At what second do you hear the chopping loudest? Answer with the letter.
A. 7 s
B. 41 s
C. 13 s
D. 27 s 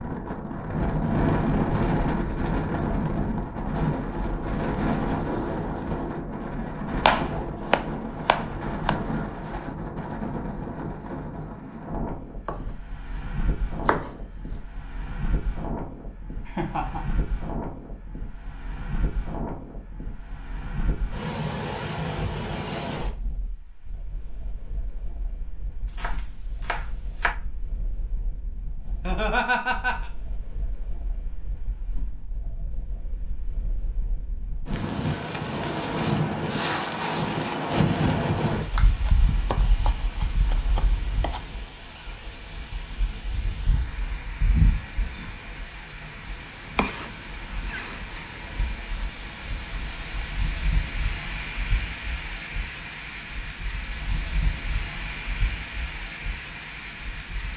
A.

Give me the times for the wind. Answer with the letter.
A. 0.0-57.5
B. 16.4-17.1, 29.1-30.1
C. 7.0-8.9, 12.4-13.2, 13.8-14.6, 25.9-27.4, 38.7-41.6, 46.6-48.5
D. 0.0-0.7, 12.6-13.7
A.